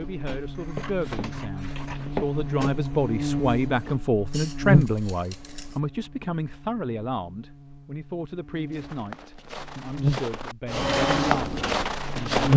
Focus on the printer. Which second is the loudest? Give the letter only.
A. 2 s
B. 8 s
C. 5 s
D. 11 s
D.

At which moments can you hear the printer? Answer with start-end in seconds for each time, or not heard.
0.1-4.0, 10.7-12.4.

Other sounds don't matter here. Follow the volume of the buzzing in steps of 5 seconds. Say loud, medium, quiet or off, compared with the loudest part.
medium, quiet, loud.